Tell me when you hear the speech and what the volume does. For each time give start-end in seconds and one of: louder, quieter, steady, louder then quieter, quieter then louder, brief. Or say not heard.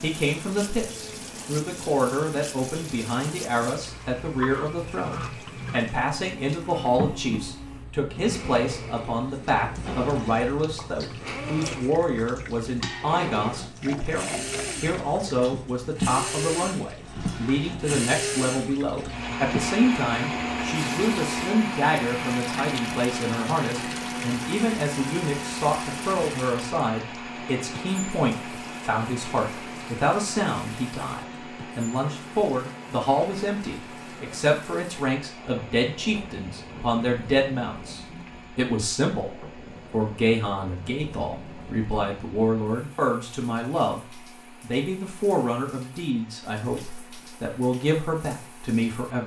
0.0-49.2 steady.